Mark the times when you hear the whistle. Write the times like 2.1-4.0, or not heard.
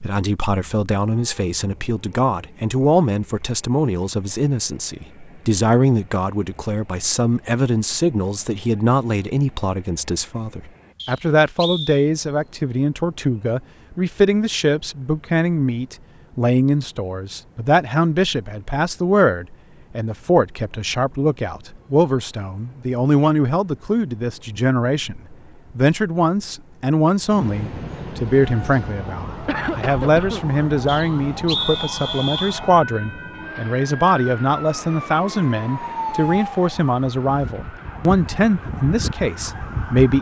10.9-12.1, 30.9-32.6.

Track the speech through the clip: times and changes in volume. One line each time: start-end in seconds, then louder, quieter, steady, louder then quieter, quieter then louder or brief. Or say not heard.
0.0-40.1 steady.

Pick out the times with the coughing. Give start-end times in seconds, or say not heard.
29.4-30.4.